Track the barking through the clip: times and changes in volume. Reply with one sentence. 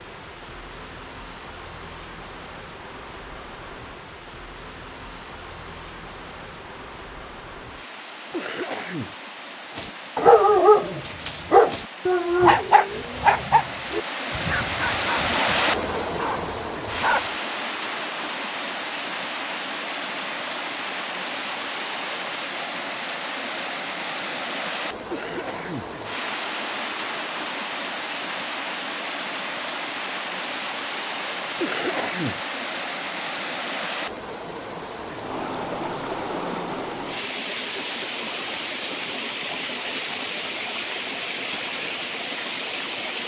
You can hear the barking from 9.8 to 17.3 s, getting quieter.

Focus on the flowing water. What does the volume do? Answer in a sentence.
The volume of the flowing water goes up.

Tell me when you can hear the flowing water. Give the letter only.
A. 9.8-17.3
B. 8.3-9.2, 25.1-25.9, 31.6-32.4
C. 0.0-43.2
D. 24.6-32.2
C.